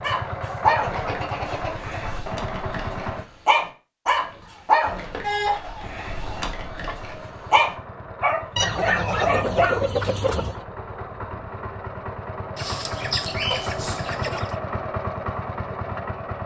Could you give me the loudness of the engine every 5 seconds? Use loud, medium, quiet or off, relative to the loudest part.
loud, medium, loud, loud.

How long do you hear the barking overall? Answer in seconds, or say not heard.
10 s.